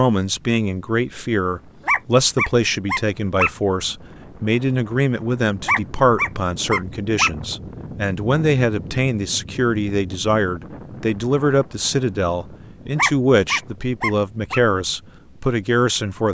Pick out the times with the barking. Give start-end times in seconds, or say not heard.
1.9-3.5, 5.7-7.3, 12.9-14.6.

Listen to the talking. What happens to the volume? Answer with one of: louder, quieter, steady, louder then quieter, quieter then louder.
steady.